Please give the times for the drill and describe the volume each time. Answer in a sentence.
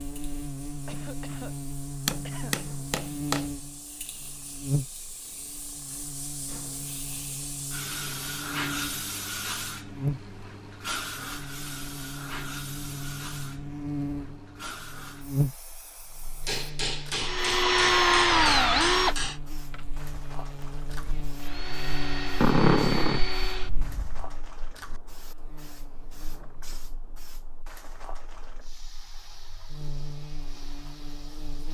You can hear the drill from 17.2 to 24.4 s, getting quieter then louder.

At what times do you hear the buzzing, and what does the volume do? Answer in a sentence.
You can hear the buzzing from 0.0 to 31.6 s, getting quieter.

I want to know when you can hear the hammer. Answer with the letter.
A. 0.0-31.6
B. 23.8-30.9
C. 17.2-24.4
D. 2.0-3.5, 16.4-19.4
D.